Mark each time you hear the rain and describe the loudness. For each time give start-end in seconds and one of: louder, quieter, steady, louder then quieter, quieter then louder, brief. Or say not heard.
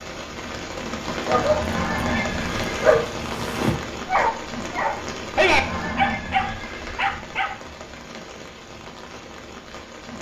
0.0-10.1 quieter.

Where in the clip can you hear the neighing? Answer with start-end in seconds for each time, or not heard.
1.4-2.8, 5.3-7.0.